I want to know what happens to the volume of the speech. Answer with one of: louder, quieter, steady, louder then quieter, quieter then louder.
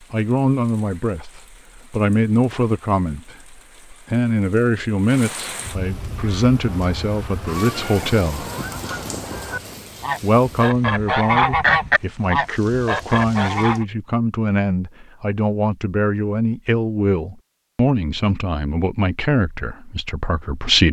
steady.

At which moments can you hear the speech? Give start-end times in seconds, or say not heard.
0.1-8.4, 10.2-20.8.